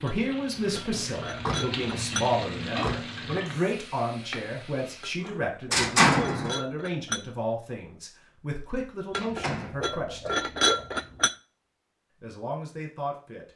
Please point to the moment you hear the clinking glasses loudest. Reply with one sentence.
The volume of the clinking glasses peaks at 11 seconds.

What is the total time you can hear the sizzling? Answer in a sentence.
You can hear the sizzling for 5 seconds altogether.